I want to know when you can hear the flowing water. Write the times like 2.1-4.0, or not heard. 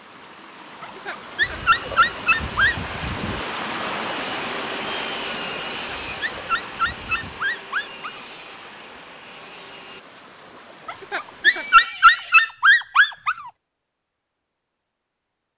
0.0-11.9.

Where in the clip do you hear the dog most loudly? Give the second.
12 s.